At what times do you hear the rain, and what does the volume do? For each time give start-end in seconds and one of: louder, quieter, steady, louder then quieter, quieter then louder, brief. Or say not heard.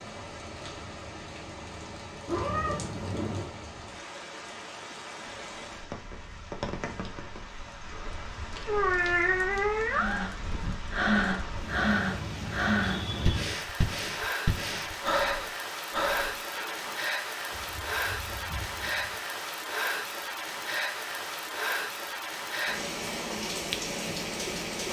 0.0-24.8 louder.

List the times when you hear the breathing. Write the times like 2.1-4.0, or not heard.
9.9-16.9.